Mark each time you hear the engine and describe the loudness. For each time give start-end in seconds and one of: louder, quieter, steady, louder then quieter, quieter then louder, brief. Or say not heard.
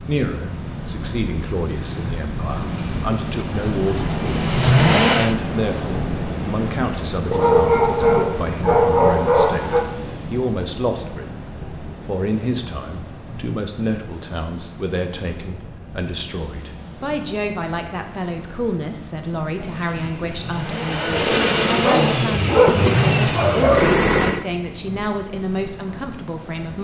2.5-5.3 brief
19.6-24.4 louder.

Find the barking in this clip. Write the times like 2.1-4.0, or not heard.
7.3-9.8, 21.9-23.9.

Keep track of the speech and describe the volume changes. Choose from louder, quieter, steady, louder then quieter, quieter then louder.
steady.